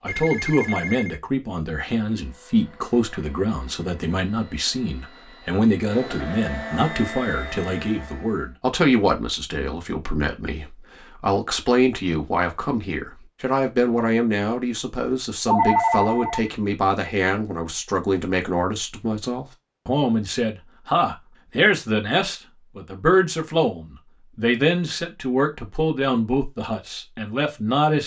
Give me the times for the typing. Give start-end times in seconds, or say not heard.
not heard.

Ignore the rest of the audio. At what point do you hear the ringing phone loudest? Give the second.
16 s.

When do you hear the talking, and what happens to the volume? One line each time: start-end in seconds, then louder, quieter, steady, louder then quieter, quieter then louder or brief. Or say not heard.
0.0-28.0 steady.